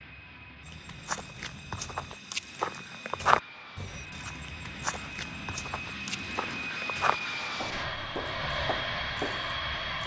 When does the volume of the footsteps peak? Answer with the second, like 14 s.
3 s.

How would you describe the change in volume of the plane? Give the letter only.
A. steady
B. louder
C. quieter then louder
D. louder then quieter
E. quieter
B.